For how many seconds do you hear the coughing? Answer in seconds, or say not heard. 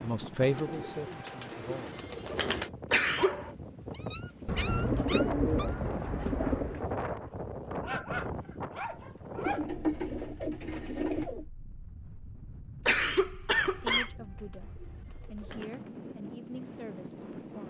2 s.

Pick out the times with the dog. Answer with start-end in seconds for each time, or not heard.
3.1-9.8.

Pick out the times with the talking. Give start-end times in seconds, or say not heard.
0.0-2.0, 13.8-17.6.